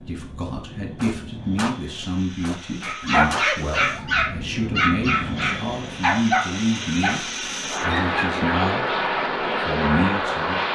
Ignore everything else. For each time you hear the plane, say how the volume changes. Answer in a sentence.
The plane can be heard from 0.0 to 10.7 s, getting louder.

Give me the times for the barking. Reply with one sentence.
The barking can be heard from 2.8 to 8.3 s.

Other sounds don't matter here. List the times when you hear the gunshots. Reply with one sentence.
The gunshots can be heard from 0.9 to 3.5 s.